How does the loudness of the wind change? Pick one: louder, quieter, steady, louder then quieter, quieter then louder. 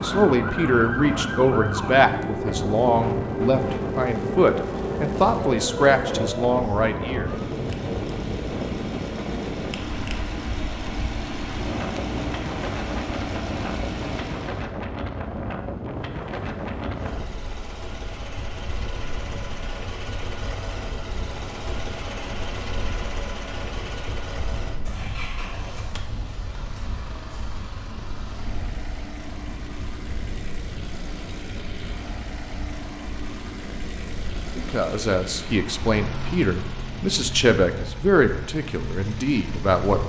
quieter.